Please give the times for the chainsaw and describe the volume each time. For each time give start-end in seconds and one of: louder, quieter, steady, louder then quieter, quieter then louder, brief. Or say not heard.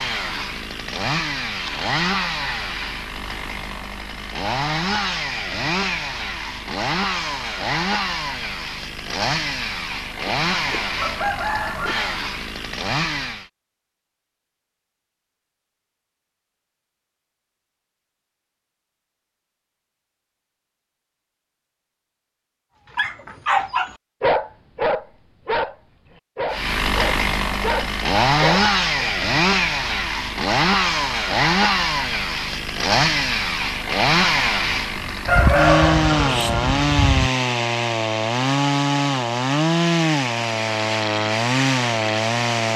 0.0-13.5 steady
26.5-42.7 steady.